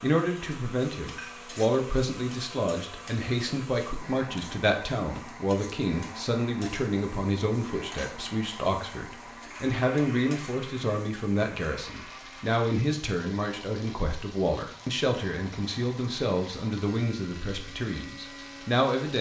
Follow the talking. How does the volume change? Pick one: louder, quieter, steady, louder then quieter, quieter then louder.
steady.